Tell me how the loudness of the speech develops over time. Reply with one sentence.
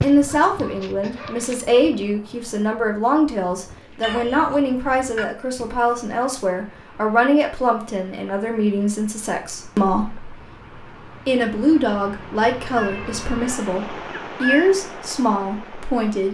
The volume of the speech stays about the same.